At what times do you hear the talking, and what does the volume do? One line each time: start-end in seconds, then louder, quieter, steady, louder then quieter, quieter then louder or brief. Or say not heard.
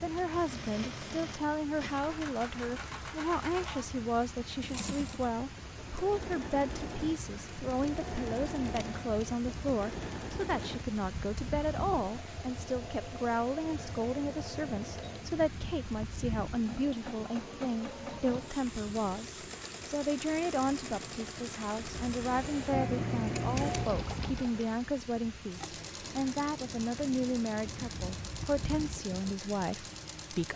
0.0-30.5 steady.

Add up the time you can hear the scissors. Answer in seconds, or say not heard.
4 s.